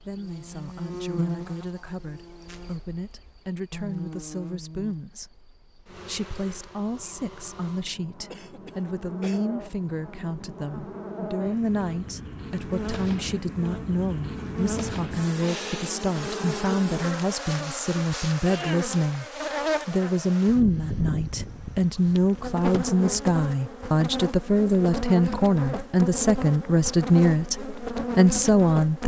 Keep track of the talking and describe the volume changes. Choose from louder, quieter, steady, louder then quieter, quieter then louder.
louder.